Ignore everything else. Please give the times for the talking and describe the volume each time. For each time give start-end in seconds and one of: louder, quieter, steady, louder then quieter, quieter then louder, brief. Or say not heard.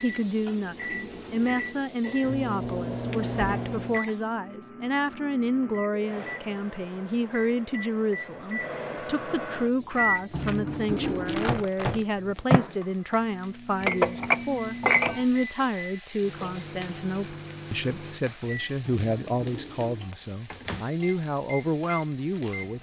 0.0-22.7 steady.